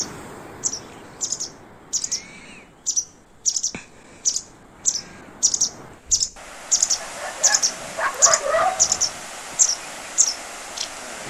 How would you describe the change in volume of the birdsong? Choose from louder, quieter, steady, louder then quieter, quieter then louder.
louder.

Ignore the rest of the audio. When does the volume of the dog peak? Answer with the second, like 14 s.
9 s.